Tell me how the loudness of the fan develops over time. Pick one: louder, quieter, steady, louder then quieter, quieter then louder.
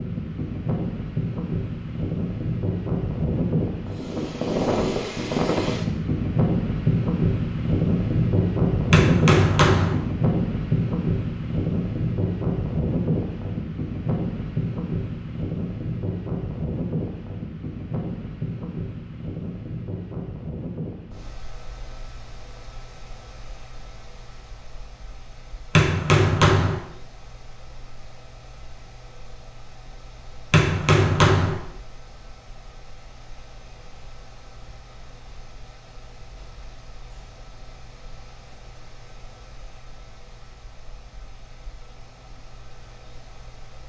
quieter.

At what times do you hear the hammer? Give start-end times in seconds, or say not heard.
8.9-9.9, 25.8-26.8, 30.5-31.6.